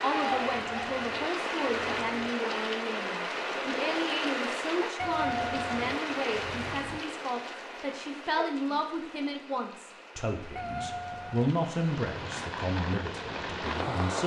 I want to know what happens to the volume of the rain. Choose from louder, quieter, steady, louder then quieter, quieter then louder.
quieter then louder.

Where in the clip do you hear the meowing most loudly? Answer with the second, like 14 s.
5 s.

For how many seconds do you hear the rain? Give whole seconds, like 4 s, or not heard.
14 s.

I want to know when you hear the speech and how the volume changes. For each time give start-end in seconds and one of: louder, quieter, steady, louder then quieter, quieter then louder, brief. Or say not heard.
0.0-14.2 steady.